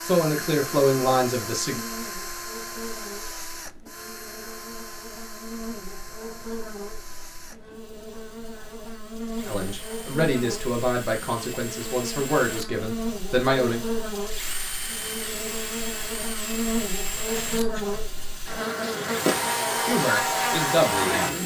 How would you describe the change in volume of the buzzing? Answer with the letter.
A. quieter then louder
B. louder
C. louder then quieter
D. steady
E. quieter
B.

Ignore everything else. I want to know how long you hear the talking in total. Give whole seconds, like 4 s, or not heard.
8 s.